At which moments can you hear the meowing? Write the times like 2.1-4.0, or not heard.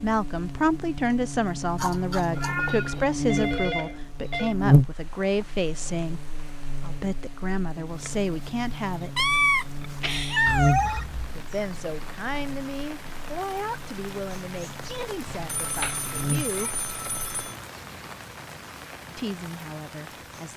1.8-3.0, 9.2-11.0, 15.2-16.7.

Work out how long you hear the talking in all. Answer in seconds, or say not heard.
16 s.